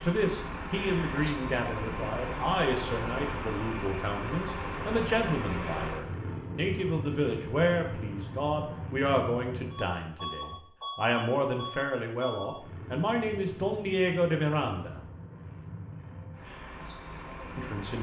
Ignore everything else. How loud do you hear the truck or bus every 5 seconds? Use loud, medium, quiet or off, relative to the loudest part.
loud, loud, medium, medium.